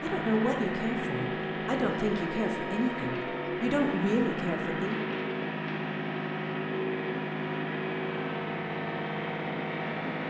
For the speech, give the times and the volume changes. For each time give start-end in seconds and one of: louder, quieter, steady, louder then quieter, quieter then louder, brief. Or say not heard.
0.0-5.0 steady.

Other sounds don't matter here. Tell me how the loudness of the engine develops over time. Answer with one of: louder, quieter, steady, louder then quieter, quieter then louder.
steady.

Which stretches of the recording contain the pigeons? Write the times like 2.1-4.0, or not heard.
not heard.